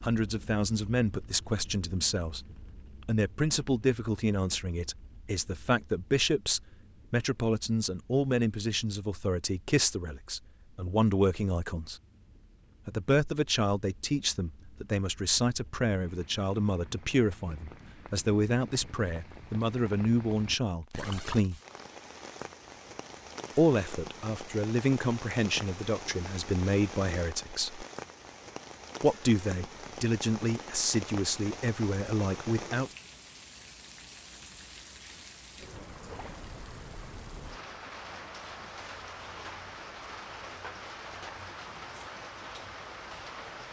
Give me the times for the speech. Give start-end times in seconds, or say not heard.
0.0-2.5, 3.0-12.0, 12.8-21.6, 23.6-27.9, 29.0-32.9.